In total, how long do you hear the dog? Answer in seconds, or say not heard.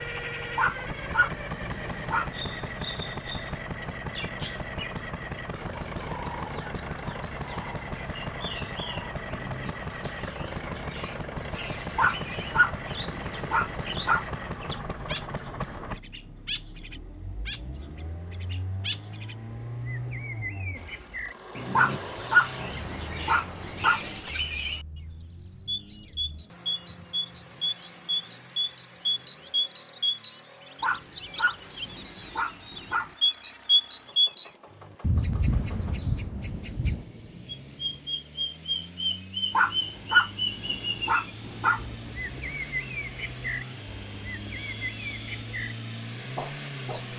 11 s.